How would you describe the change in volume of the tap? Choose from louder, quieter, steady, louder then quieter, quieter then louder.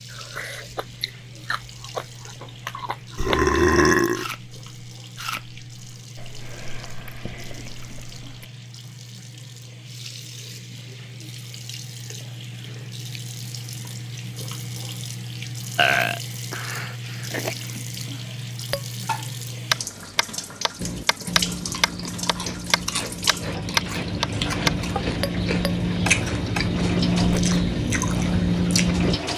louder.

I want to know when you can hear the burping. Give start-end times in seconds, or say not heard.
3.1-4.3, 15.8-17.6.